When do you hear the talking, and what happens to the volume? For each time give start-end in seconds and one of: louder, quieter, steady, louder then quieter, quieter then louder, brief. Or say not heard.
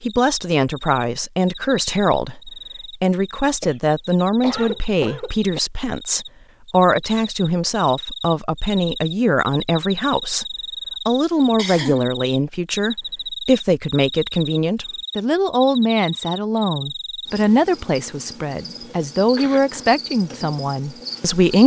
0.0-21.6 steady.